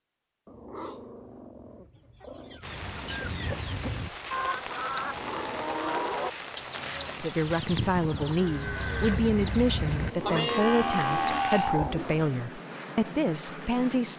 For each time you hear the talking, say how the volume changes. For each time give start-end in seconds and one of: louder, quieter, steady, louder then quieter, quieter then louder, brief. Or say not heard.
7.2-14.1 steady.